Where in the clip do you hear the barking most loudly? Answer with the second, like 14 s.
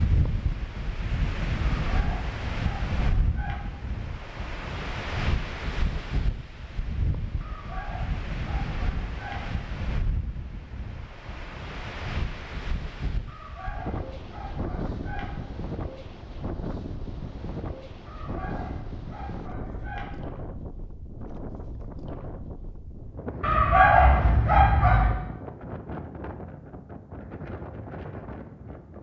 24 s.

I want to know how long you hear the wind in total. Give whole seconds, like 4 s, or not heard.
29 s.